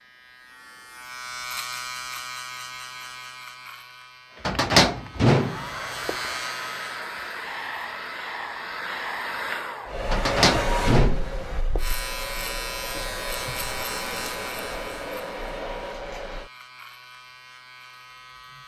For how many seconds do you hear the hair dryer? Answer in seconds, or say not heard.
12 s.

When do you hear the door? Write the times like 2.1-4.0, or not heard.
4.5-6.2, 10.1-11.8.